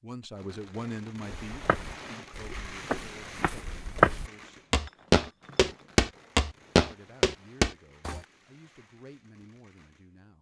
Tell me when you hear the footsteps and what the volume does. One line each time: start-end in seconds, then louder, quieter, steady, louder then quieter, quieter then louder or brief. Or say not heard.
1.5-8.2 louder.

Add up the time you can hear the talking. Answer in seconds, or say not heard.
8 s.